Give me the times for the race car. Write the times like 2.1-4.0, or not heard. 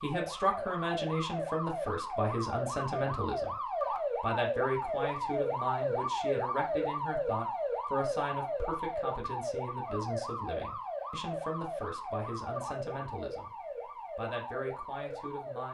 not heard.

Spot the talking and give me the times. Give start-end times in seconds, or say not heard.
0.0-3.5, 4.2-13.5, 14.2-15.6.